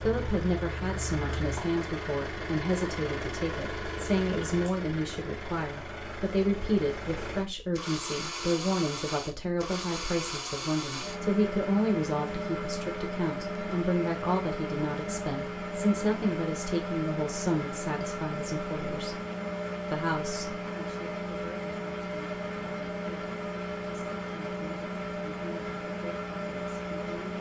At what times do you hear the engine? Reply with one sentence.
You can hear the engine from 0.0 to 27.3 s.